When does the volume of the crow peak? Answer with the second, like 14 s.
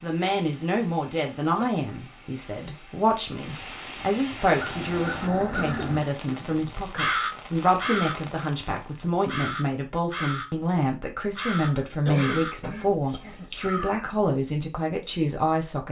7 s.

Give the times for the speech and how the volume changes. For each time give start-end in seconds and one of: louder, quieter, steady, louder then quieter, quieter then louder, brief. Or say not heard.
0.0-15.8 steady.